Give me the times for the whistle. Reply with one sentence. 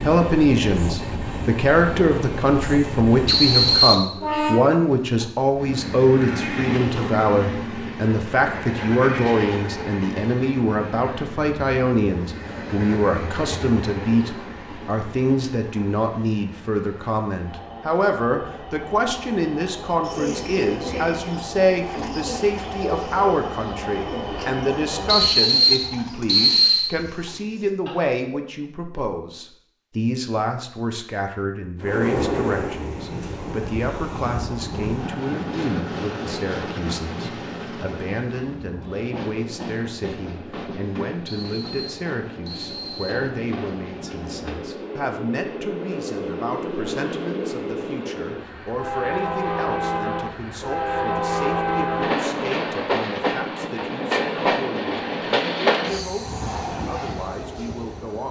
The whistle can be heard from 3.2 to 4.1 s, from 25.1 to 26.9 s and from 41.2 to 43.2 s.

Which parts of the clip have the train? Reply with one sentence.
The train can be heard from 0.0 to 25.4 s and from 31.8 to 58.2 s.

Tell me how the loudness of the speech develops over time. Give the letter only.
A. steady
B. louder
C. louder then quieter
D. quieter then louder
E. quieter
E.